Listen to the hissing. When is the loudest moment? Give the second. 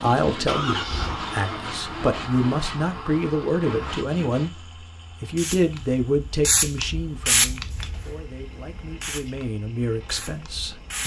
7 s.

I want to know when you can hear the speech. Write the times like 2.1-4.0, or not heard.
0.0-4.5, 5.2-11.0.